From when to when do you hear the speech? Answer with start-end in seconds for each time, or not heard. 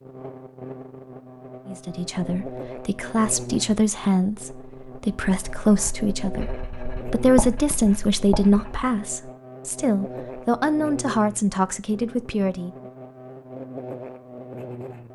1.6-12.7.